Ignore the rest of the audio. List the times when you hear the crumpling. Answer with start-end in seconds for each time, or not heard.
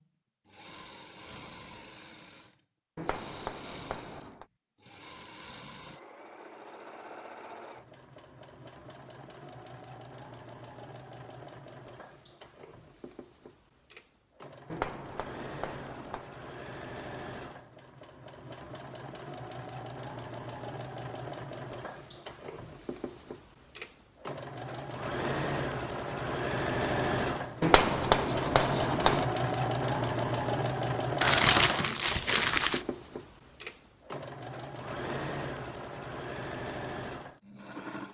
31.2-32.9.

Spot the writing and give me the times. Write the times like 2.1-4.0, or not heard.
3.0-4.5, 14.7-16.2, 27.6-29.2.